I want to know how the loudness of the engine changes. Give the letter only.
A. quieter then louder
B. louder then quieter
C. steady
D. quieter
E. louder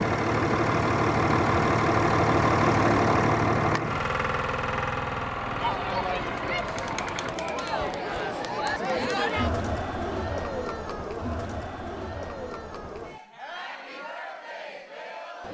D.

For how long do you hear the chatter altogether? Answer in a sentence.
You can hear the chatter for 10 seconds altogether.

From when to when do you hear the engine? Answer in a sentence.
You can hear the engine from 0.0 to 7.4 s.